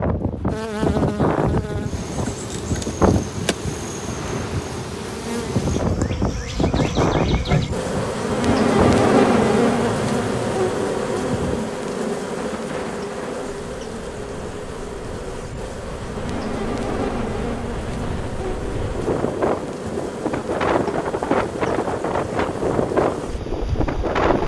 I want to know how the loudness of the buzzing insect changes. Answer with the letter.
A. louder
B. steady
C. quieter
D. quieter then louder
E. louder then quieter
E.